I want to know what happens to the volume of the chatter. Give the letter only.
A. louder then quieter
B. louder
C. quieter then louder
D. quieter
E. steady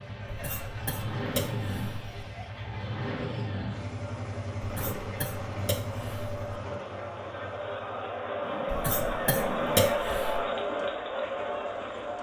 B.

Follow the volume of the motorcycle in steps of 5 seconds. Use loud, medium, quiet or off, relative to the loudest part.
loud, medium, quiet.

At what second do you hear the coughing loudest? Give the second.
10 s.